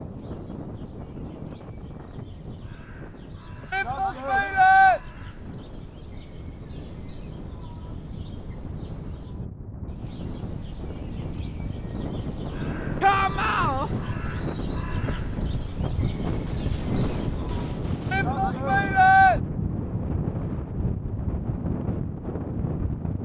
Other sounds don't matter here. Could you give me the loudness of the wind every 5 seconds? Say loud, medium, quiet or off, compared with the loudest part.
medium, medium, loud, loud, loud.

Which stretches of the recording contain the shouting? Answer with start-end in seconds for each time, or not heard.
3.7-5.0, 13.0-13.9, 18.1-19.4.